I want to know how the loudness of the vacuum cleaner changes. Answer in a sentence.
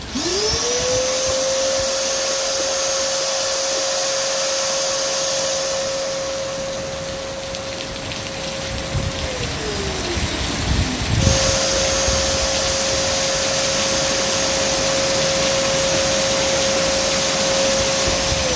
The loudness of the vacuum cleaner goes down, then up.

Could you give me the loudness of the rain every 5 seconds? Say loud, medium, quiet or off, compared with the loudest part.
quiet, medium, loud, loud.